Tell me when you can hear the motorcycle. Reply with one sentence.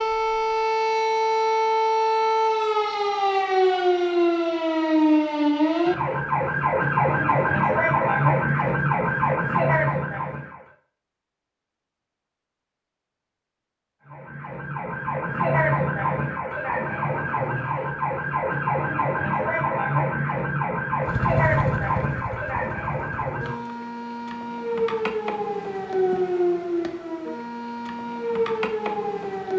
You can hear the motorcycle from 21.0 to 23.4 s.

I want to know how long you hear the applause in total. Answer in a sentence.
You can't hear the applause here.